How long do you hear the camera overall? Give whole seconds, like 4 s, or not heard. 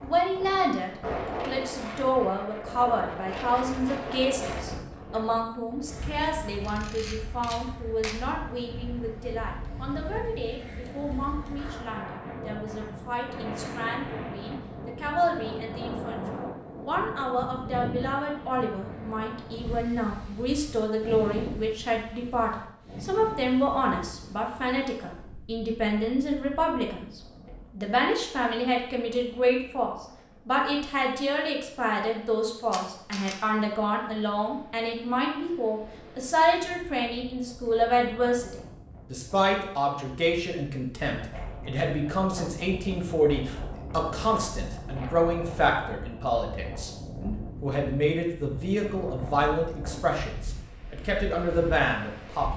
2 s.